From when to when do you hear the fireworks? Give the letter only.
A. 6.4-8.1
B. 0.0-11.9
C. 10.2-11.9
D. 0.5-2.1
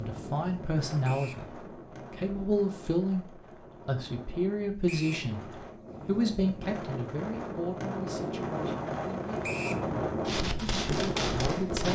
C.